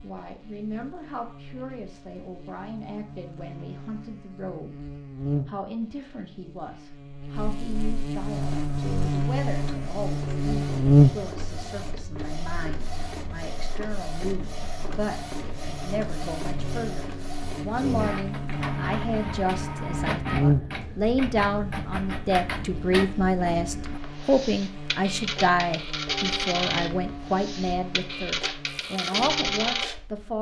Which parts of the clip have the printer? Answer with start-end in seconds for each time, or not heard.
8.2-30.2.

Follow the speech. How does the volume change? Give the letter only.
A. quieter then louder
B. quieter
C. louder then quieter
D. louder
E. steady
D.